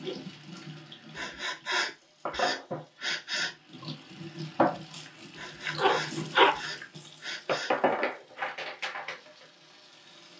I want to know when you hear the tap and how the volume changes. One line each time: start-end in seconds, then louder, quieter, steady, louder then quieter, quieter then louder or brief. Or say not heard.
0.0-10.3 louder then quieter.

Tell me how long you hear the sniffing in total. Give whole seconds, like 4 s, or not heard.
5 s.